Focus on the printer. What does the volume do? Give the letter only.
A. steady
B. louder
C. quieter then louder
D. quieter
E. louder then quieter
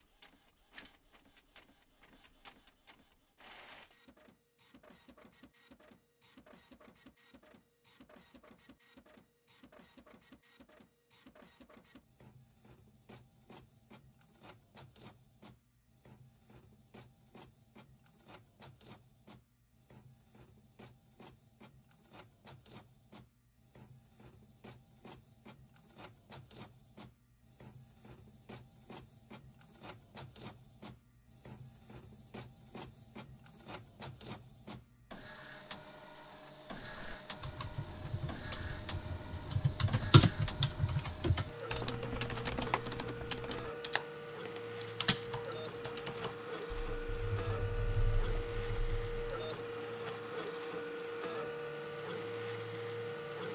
B.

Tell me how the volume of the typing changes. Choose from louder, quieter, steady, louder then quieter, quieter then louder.
louder then quieter.